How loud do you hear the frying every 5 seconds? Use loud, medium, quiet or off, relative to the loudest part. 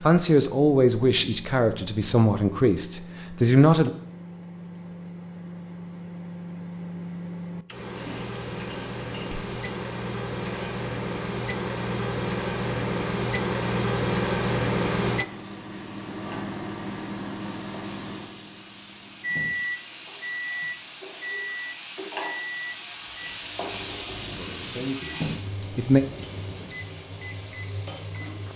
off, medium, medium, medium, loud, loud.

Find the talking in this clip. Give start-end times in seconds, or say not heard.
0.0-3.9, 24.3-26.0.